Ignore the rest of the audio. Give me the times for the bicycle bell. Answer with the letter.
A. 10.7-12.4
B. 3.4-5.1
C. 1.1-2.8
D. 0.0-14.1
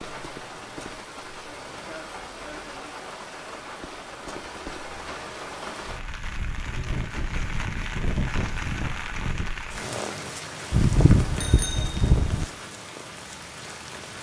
A.